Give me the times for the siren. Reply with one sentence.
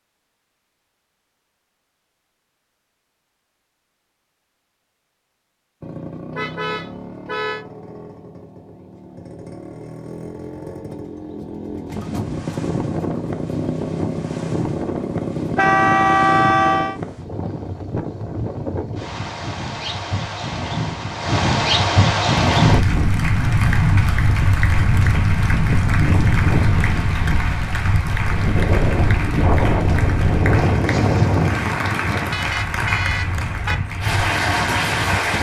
The siren can't be heard in this clip.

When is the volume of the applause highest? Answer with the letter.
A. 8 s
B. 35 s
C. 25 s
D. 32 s
B.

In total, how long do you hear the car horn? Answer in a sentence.
The car horn can be heard for 4 seconds in total.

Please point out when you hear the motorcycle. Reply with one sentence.
The motorcycle can be heard from 5.8 to 16.5 s.